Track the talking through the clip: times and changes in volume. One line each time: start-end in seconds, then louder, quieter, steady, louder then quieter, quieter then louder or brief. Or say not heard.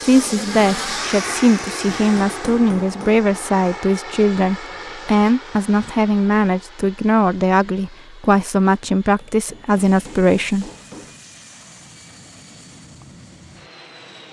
0.0-10.7 steady.